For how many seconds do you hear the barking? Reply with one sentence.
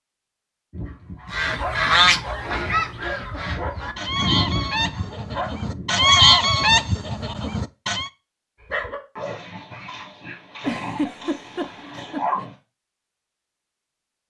The barking can be heard for 9 seconds in total.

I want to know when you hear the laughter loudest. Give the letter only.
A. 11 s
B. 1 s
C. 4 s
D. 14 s
A.